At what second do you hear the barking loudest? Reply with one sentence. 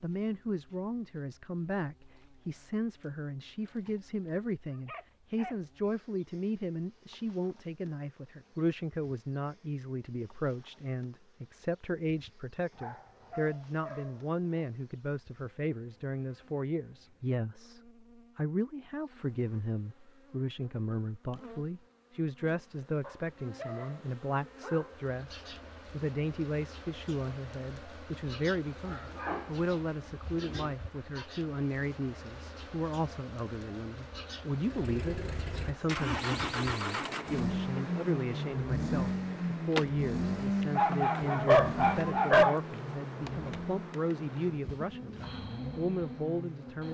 The loudest moment of the barking is at 42 seconds.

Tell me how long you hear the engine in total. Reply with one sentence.
The engine can be heard for 12 seconds in total.